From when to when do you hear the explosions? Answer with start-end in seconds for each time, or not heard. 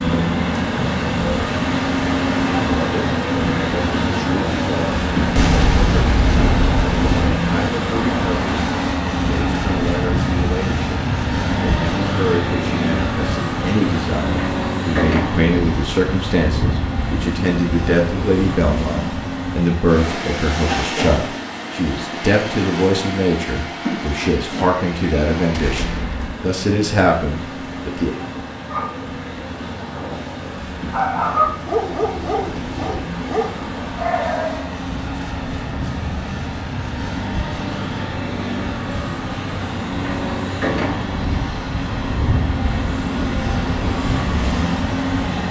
5.3-7.3, 25.5-26.4.